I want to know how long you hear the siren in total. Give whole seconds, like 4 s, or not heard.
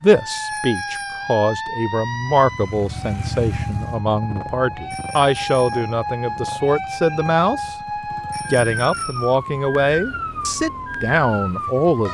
12 s.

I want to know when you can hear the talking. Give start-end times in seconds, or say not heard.
0.0-7.8, 8.5-12.0.